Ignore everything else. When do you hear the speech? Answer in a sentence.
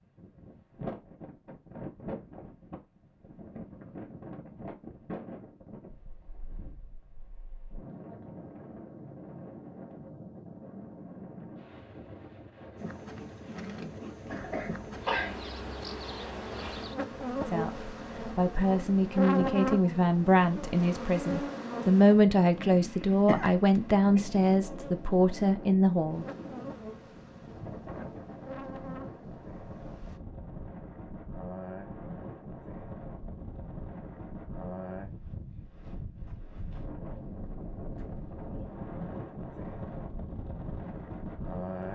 You can hear the speech from 17.4 to 26.2 s.